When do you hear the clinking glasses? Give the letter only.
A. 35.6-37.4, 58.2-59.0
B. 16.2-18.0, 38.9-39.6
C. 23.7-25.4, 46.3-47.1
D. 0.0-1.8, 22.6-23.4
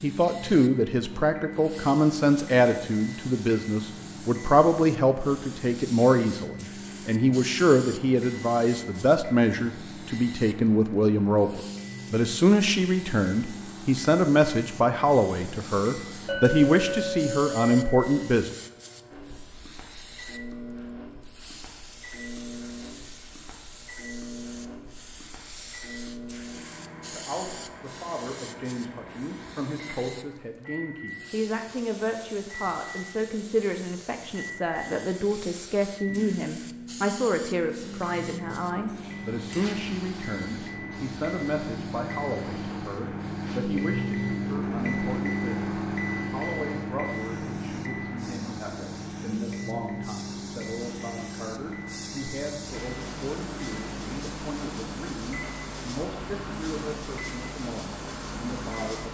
B.